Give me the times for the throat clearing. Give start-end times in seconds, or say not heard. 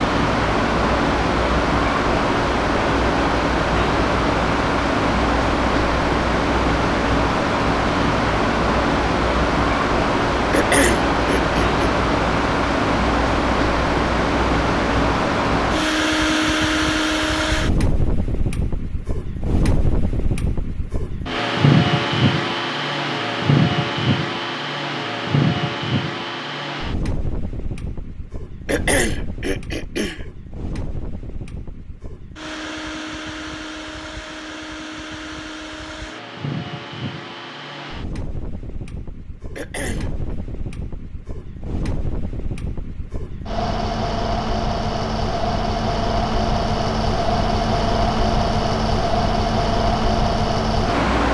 10.5-11.7, 28.6-30.2, 39.5-40.4.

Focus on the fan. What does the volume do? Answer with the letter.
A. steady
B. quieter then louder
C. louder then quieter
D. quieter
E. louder
B.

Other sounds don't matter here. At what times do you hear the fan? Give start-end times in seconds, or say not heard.
0.0-51.3.